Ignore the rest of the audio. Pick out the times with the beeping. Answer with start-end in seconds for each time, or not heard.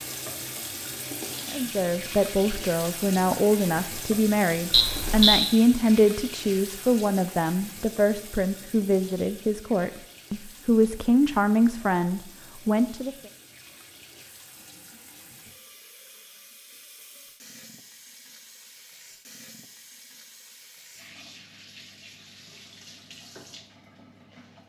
4.7-5.5.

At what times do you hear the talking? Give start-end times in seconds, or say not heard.
1.5-13.2.